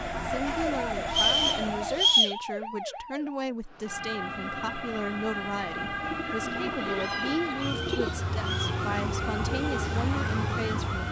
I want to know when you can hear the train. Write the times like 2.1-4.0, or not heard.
0.0-2.1, 4.2-11.0.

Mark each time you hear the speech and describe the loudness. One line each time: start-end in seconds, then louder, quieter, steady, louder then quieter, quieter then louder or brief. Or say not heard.
0.1-11.0 steady.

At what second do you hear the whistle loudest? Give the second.
2 s.